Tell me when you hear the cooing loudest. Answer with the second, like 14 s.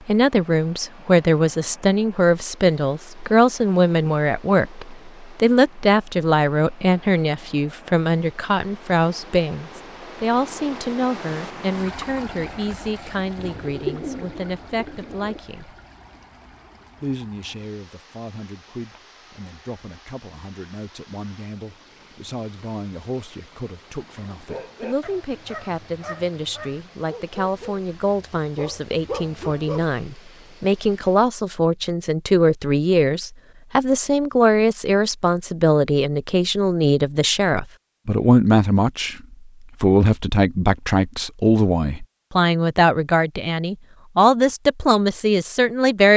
14 s.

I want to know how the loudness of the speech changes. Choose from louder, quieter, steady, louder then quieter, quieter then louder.
quieter then louder.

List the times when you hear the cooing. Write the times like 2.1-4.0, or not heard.
13.3-15.4.